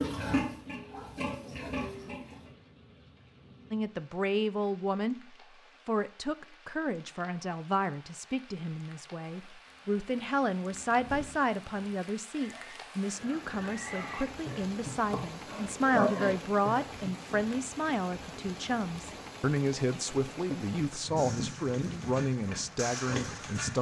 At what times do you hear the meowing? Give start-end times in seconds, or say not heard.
not heard.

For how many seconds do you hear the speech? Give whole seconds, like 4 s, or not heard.
20 s.